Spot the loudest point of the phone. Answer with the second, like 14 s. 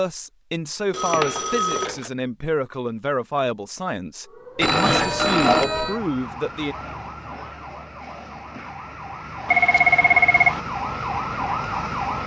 10 s.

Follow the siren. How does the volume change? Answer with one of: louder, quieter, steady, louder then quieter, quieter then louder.
quieter then louder.